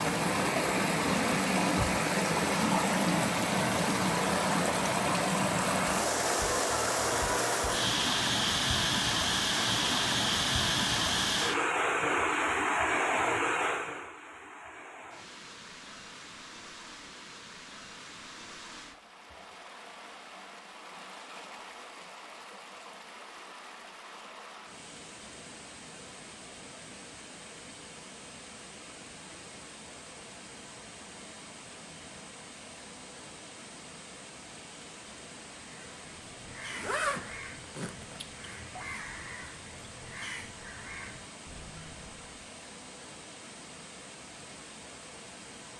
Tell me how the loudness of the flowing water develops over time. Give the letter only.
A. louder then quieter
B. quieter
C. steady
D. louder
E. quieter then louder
B.